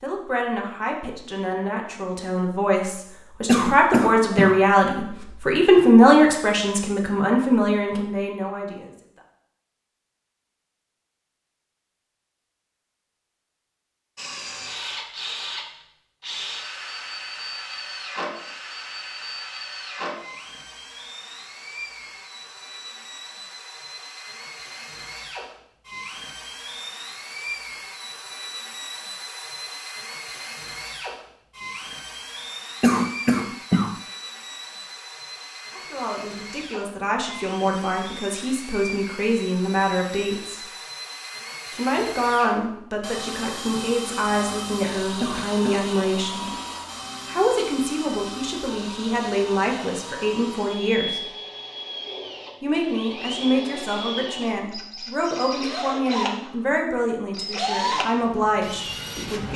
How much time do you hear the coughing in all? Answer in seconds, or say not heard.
3 s.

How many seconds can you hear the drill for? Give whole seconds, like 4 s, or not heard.
45 s.